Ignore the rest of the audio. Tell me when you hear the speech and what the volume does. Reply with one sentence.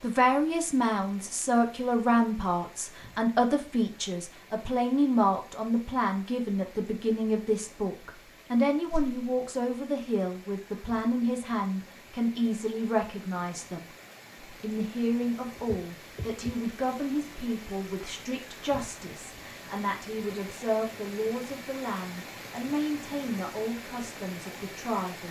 The speech can be heard from 0.0 to 25.2 s, getting quieter.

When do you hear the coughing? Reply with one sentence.
The coughing can't be heard in this clip.